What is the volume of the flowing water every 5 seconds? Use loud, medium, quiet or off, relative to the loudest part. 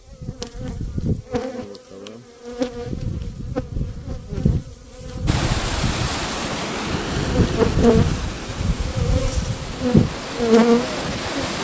off, loud, loud.